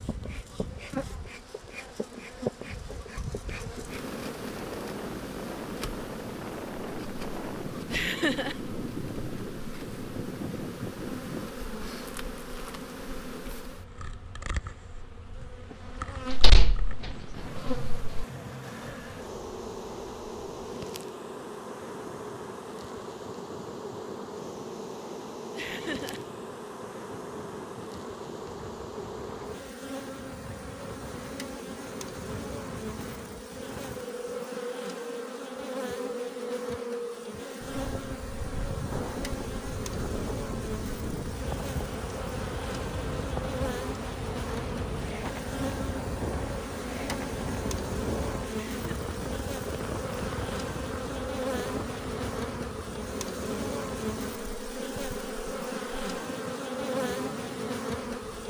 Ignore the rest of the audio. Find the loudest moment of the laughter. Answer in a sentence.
The volume of the laughter peaks at 8 seconds.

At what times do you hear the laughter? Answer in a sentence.
You can hear the laughter from 7.9 to 8.6 s, from 25.6 to 26.2 s and from 48.5 to 49.0 s.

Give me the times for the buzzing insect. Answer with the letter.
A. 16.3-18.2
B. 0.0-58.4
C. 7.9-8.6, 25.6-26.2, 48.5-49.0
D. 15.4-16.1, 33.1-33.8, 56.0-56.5
B.